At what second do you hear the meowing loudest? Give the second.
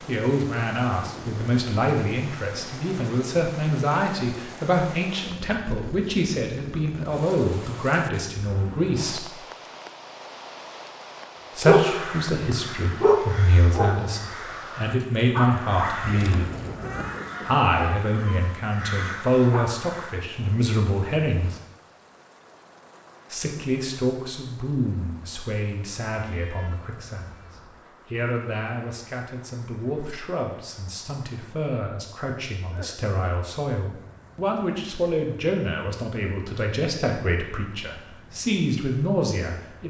16 s.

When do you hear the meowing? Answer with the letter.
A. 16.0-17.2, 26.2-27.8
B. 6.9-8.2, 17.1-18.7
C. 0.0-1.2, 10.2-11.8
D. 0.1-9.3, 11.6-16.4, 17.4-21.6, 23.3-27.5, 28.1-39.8
A.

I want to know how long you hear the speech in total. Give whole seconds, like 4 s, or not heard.
34 s.